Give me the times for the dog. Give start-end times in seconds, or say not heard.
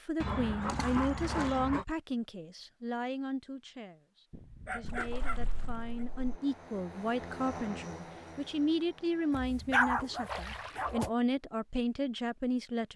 0.2-1.9, 4.3-6.0, 9.3-11.1.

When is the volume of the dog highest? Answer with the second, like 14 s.
10 s.